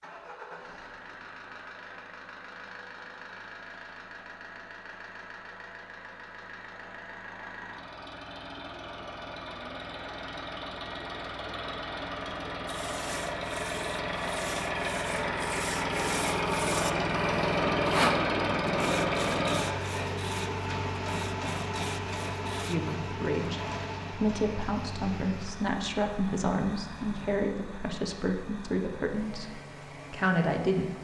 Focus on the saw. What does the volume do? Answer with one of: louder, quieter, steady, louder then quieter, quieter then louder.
louder then quieter.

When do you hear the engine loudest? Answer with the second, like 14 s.
18 s.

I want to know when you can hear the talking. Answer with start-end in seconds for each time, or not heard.
22.6-30.9.